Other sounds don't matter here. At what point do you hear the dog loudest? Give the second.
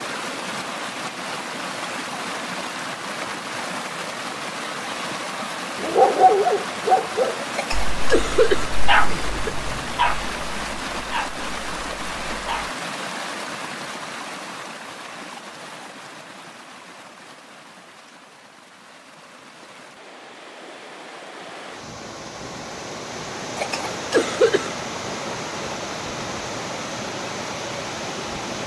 6 s.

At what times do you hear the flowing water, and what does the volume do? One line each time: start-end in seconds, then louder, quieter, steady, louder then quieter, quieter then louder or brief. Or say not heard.
0.0-28.6 quieter then louder.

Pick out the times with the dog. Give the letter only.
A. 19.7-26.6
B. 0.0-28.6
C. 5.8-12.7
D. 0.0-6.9
C.